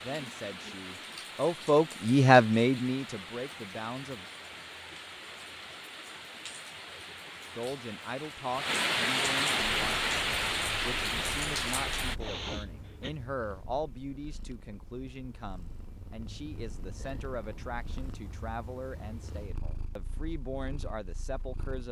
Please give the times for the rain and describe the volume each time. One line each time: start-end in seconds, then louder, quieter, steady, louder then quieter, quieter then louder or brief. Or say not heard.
0.0-12.2 louder.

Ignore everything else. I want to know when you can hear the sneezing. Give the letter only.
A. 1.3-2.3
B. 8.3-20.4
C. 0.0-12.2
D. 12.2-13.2
D.